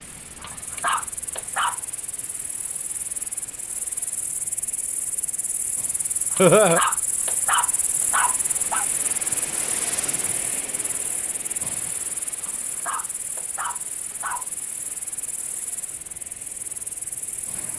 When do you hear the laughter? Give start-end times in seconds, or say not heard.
6.3-6.8.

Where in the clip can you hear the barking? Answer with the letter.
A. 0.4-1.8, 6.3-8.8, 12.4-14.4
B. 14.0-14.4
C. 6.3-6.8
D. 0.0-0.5
A.